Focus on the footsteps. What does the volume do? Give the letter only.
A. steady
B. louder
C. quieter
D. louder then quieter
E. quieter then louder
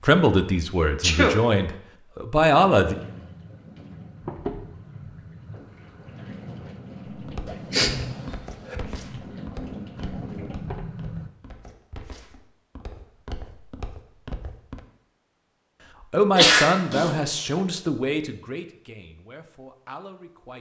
E.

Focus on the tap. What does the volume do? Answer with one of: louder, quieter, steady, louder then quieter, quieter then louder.
quieter then louder.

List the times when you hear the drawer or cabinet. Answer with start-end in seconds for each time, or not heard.
not heard.